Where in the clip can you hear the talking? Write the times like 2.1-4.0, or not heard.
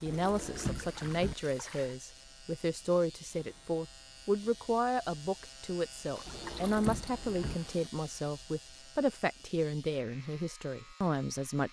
0.0-11.6.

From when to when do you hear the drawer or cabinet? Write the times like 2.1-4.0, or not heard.
0.1-1.4, 6.2-7.5.